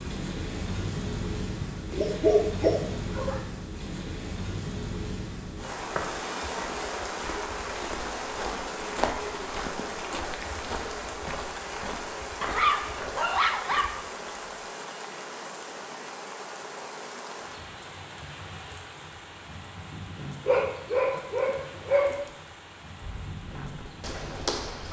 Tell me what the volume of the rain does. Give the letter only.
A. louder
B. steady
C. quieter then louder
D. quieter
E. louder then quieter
D.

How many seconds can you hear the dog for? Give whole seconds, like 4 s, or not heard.
5 s.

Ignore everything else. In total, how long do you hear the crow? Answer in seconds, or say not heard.
not heard.